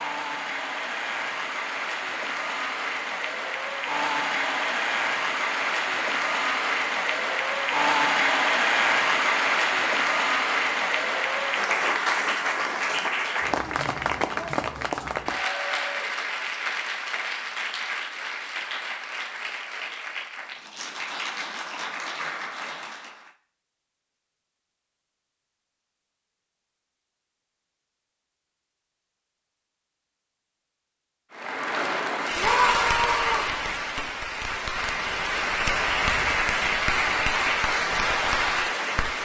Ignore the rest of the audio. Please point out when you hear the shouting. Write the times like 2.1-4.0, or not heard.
32.4-33.5.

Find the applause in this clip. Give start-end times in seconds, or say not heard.
0.0-23.4, 31.3-39.2.